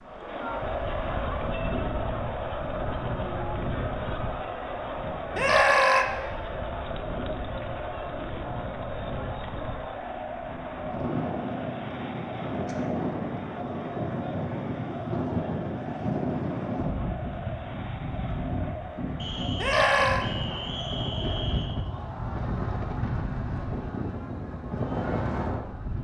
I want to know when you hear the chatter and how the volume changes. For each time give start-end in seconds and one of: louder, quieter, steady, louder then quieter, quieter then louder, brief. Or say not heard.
0.0-25.9 quieter.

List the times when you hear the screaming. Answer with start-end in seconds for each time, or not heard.
5.3-6.0, 19.6-20.2.